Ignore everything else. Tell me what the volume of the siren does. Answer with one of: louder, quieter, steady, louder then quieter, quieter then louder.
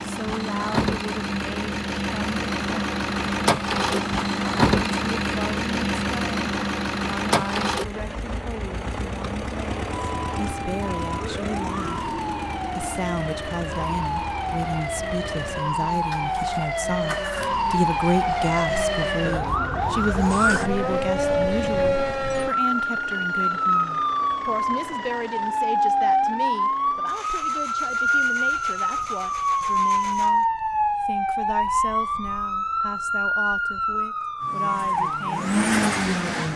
louder.